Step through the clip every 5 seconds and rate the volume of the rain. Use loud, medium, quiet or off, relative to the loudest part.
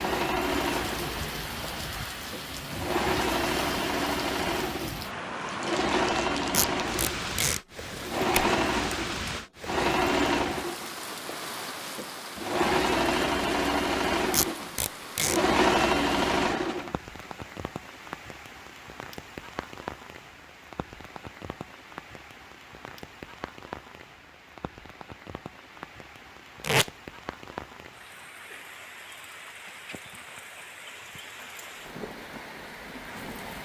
loud, loud, loud, medium, medium, medium, medium.